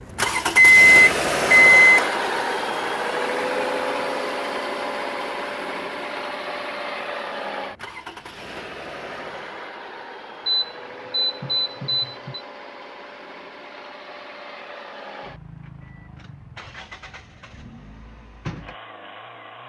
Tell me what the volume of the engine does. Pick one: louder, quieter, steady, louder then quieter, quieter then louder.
quieter.